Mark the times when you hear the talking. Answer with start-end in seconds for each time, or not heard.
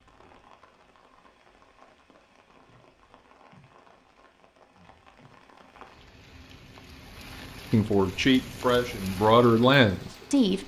7.7-10.6.